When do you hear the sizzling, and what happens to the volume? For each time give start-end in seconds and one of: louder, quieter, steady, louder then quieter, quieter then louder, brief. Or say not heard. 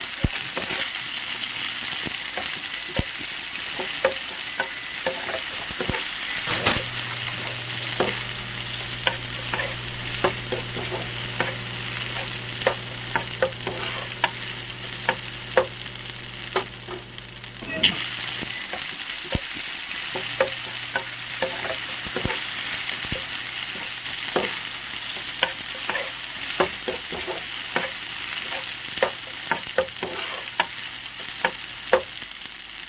0.0-32.8 steady.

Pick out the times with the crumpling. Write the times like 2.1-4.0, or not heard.
6.5-8.0.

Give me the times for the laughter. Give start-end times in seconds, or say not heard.
not heard.